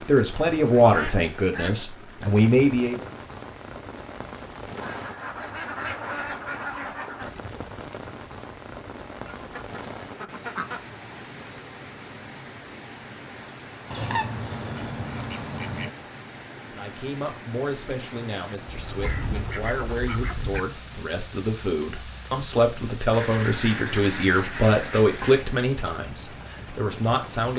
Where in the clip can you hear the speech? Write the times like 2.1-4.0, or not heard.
0.1-3.0, 16.7-27.5.